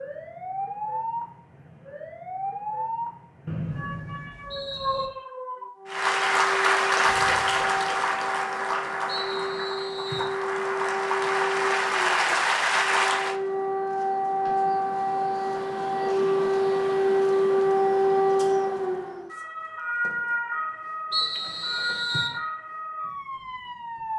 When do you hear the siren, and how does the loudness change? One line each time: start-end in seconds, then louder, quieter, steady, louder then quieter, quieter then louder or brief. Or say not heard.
0.0-24.1 louder then quieter.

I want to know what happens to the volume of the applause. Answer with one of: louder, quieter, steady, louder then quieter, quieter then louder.
quieter then louder.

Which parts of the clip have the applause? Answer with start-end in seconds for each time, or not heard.
5.8-13.3.